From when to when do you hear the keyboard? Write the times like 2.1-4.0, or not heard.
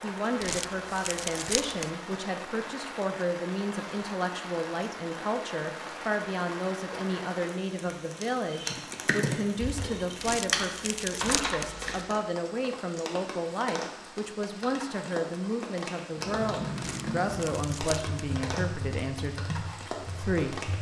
8.5-12.2, 16.1-20.7.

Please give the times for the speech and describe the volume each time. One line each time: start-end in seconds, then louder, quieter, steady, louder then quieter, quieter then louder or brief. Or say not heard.
0.0-20.7 steady.